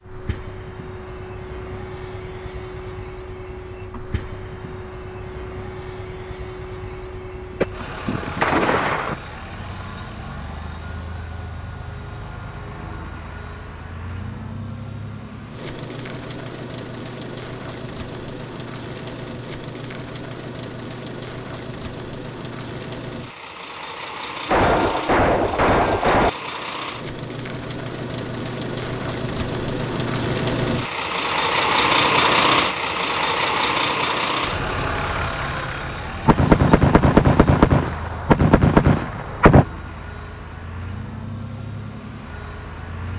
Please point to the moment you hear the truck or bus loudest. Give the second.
32 s.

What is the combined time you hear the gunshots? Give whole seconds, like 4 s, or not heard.
7 s.